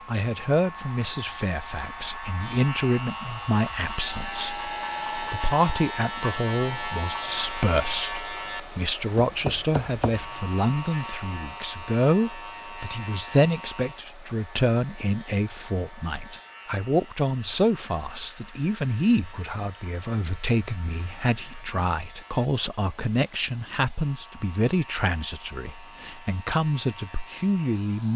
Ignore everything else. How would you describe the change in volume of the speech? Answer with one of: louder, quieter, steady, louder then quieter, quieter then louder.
steady.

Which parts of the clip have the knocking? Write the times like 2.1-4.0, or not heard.
9.2-10.6.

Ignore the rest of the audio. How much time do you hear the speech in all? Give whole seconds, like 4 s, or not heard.
28 s.